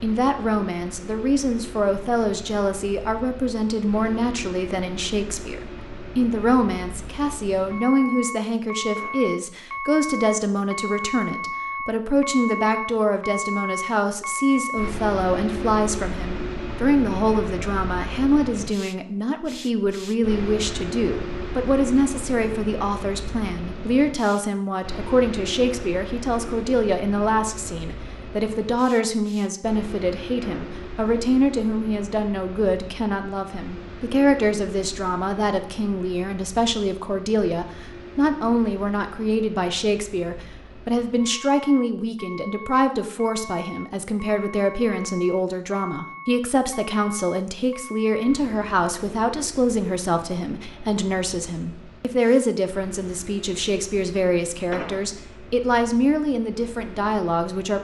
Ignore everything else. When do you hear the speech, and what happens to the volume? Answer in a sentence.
The speech can be heard from 0.0 to 57.7 s, at a steady volume.